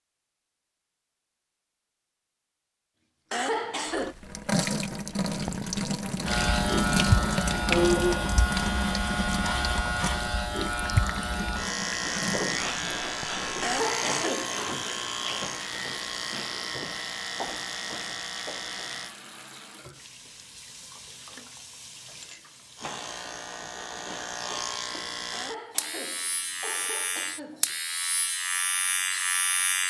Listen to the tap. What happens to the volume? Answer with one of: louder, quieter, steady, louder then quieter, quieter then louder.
quieter.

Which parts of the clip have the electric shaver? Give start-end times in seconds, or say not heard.
6.2-19.1, 22.8-29.8.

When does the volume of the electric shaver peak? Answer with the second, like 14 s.
8 s.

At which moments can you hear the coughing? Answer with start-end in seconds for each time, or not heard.
3.3-4.2, 13.6-14.7, 25.3-27.8.